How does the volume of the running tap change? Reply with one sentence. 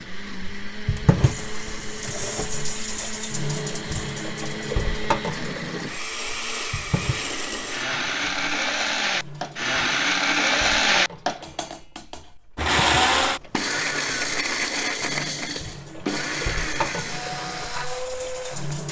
The volume of the running tap goes down, then up.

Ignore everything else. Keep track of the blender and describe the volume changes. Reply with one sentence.
The volume of the blender goes up, then down.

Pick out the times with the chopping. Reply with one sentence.
The chopping can't be heard in this clip.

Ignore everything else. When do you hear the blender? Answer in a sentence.
The blender can be heard from 0.0 to 18.8 s.